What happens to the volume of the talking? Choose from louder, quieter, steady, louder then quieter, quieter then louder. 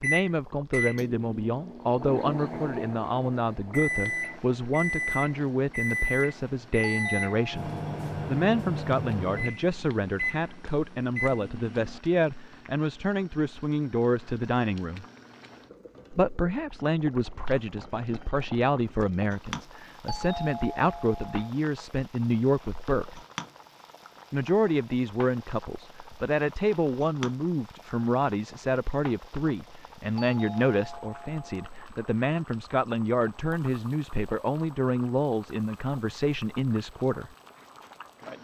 steady.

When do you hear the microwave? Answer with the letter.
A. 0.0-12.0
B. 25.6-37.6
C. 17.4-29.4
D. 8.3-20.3
A.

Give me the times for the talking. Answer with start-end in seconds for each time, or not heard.
0.0-15.1, 16.1-23.2, 24.3-37.3.